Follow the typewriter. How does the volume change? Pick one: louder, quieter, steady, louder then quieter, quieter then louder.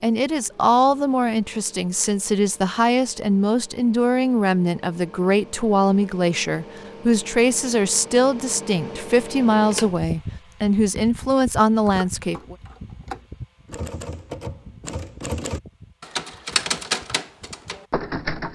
louder.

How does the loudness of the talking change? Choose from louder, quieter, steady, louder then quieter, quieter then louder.
steady.